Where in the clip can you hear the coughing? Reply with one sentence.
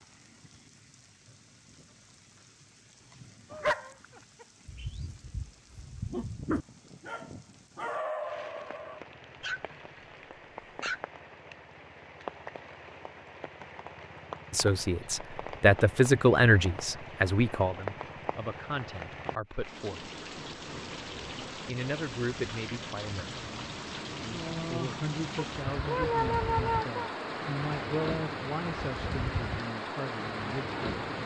You can't hear the coughing here.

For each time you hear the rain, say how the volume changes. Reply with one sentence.
You can hear the rain from 0.0 to 31.2 s, getting louder.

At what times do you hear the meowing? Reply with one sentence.
You can hear the meowing from 25.4 to 27.1 s.